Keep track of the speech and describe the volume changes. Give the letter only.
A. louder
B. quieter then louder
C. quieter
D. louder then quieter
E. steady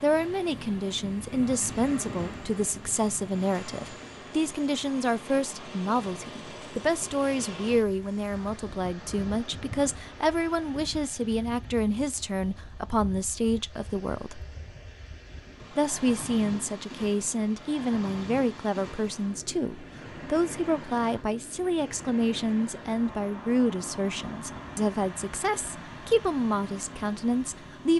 E.